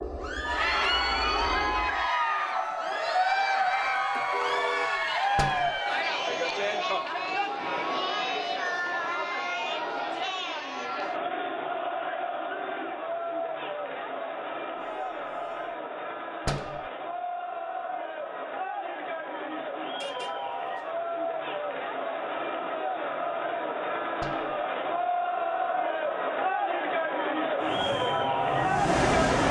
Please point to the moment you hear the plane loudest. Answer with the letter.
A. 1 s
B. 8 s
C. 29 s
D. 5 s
C.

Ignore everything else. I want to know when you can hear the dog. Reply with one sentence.
You can't hear the dog here.